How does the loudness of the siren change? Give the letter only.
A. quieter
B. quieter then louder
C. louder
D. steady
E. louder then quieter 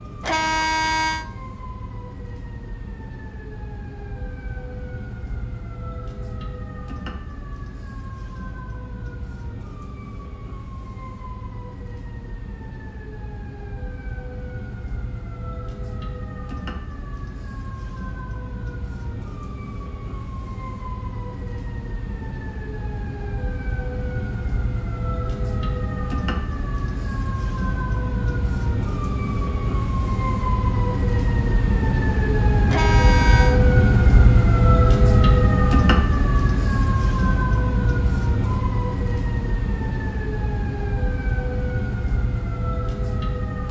C.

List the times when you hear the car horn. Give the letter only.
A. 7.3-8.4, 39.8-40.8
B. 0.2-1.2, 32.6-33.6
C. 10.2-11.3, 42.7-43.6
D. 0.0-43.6
B.